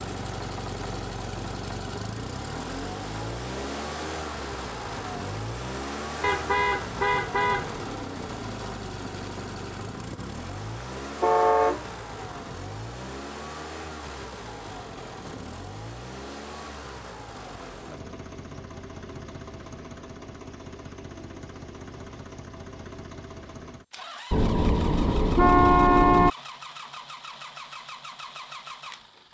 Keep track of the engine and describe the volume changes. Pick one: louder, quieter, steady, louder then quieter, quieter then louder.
quieter.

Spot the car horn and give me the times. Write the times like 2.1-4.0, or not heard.
6.2-7.8, 11.2-11.8, 24.3-26.3.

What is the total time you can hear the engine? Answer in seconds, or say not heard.
29 s.